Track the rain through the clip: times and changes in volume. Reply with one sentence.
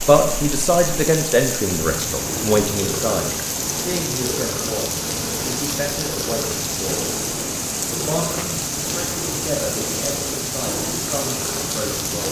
You can hear the rain from 0.0 to 12.2 s, at a steady volume.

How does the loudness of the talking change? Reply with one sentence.
The volume of the talking goes down.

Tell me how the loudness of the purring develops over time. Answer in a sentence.
The volume of the purring stays about the same.